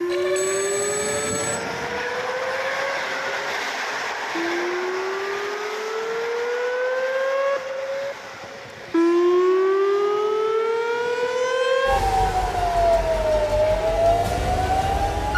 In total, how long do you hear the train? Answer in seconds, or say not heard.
15 s.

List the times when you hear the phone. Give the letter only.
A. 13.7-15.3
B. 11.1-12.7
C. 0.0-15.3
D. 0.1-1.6
D.